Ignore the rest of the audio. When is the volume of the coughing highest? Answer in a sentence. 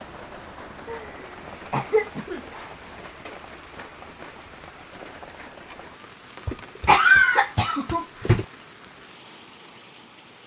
The volume of the coughing peaks at 7 seconds.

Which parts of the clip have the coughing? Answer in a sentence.
The coughing can be heard from 0.8 to 2.8 s and from 6.5 to 8.4 s.